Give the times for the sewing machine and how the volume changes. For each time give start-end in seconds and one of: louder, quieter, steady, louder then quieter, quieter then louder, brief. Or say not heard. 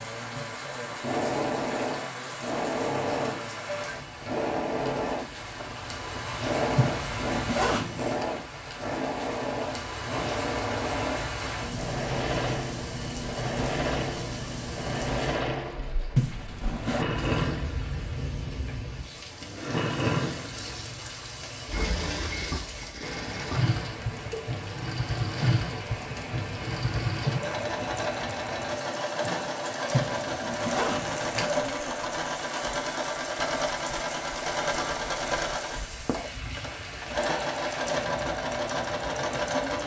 0.0-39.8 steady.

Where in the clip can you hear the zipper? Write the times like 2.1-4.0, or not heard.
6.8-8.2, 16.1-17.1, 29.9-31.8.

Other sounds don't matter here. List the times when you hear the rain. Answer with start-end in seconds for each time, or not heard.
0.0-39.8.